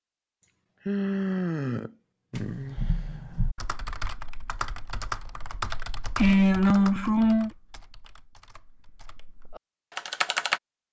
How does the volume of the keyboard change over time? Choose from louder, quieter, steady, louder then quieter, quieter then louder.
quieter then louder.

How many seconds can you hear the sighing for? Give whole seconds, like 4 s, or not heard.
3 s.